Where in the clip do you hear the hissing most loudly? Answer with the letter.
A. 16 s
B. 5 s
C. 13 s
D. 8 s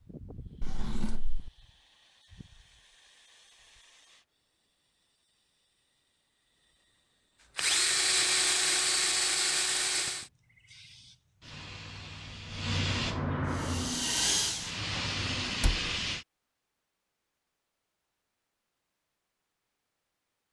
C.